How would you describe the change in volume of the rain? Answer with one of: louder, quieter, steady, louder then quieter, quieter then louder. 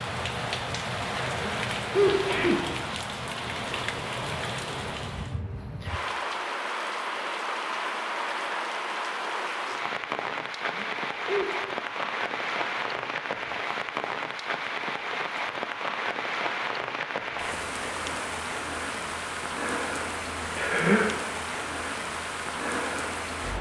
steady.